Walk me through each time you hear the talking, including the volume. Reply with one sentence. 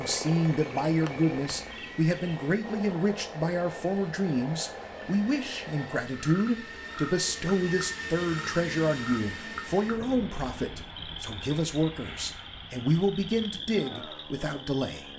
The talking can be heard from 0.0 to 15.1 s, at a steady volume.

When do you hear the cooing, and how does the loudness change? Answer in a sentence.
The cooing can't be heard in this clip.